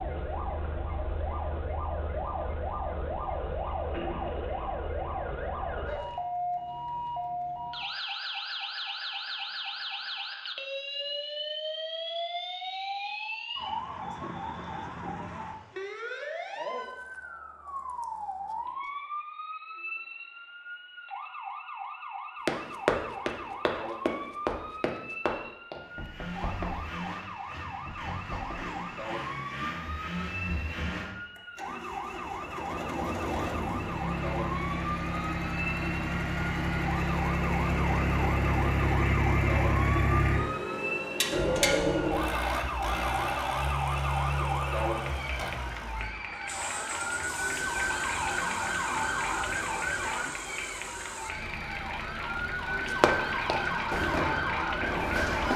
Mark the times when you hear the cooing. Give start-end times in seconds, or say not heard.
not heard.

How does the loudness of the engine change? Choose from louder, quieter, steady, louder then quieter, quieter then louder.
louder then quieter.